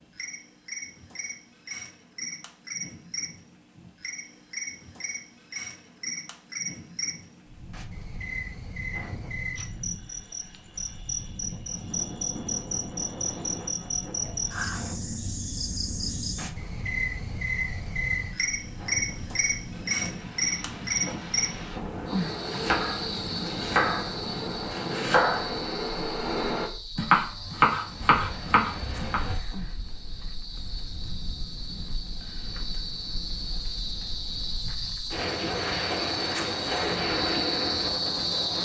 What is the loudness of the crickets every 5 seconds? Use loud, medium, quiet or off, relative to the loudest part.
medium, medium, loud, loud, loud, medium, medium, loud.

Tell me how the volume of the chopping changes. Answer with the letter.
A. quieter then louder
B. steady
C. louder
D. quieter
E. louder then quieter
C.